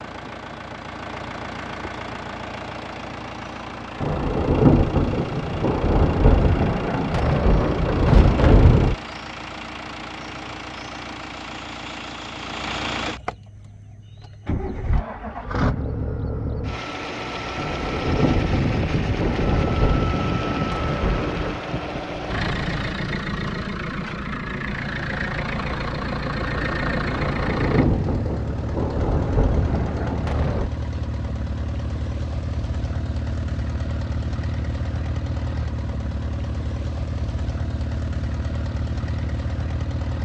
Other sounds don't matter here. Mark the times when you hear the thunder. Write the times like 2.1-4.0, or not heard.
4.0-8.9, 17.6-21.6, 27.1-30.7.